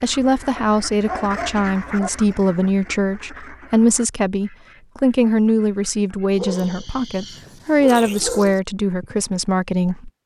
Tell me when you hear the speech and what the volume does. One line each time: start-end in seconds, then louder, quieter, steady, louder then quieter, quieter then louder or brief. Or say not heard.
0.0-10.1 steady.